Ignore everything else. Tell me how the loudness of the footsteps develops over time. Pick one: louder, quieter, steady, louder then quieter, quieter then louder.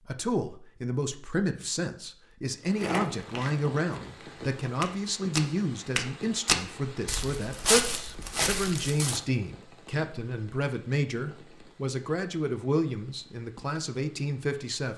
louder.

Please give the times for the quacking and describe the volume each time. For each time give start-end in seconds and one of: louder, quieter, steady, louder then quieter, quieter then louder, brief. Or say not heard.
not heard.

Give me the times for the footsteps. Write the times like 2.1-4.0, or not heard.
2.7-9.2.